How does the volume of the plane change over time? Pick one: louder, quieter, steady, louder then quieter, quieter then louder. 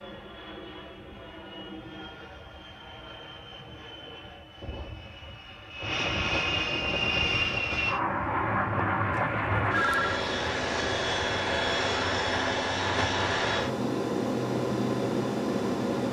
louder.